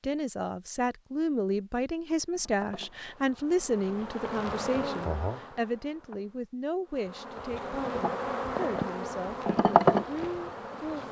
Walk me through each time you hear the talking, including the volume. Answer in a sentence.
You can hear the talking from 0.0 to 11.0 s, getting quieter.